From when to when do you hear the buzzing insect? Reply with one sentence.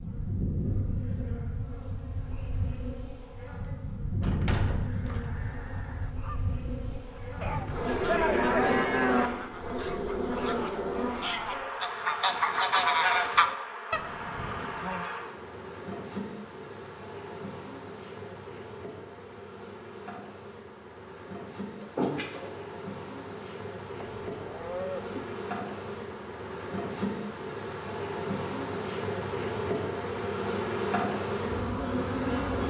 The buzzing insect can be heard from 0.0 to 32.6 s.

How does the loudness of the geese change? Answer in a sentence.
The loudness of the geese goes up.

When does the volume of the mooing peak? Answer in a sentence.
The volume of the mooing peaks at 9 seconds.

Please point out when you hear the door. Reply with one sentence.
The door can be heard from 4.2 to 5.2 s and from 21.8 to 22.6 s.